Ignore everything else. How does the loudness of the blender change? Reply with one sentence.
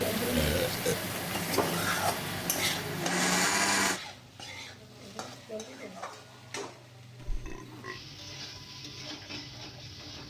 The loudness of the blender goes up.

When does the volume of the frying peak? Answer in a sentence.
The loudest moment of the frying is at 2 seconds.